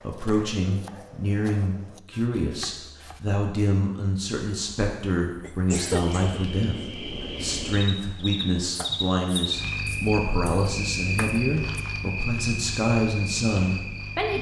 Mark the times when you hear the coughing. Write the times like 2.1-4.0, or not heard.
5.4-6.4.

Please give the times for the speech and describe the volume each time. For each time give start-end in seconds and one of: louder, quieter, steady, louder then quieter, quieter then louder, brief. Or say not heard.
0.0-14.3 steady.